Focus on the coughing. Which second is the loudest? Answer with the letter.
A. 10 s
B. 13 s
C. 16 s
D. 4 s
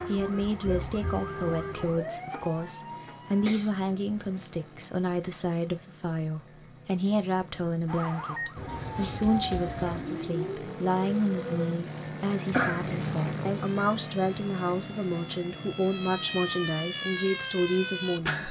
B.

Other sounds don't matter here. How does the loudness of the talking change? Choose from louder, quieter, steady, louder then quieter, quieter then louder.
steady.